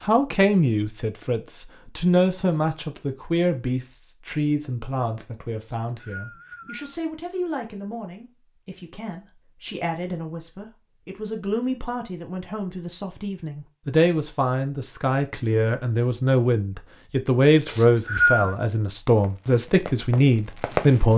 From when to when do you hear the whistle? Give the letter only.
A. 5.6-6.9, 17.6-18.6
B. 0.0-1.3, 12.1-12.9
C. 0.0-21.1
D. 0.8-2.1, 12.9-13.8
A.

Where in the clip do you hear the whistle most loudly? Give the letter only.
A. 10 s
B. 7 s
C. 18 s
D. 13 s
C.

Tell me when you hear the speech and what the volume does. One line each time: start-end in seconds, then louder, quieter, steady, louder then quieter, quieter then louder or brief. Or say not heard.
0.0-21.1 quieter then louder.